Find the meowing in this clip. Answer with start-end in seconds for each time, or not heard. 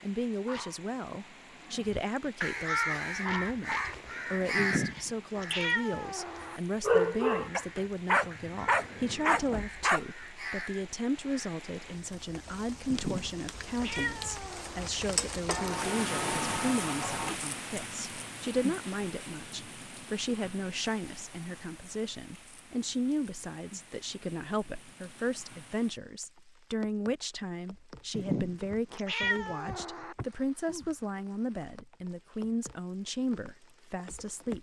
4.5-6.6, 12.9-14.9, 28.1-30.1.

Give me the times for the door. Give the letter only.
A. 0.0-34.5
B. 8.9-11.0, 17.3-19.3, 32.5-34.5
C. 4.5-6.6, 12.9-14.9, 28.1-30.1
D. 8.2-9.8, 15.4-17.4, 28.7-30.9
D.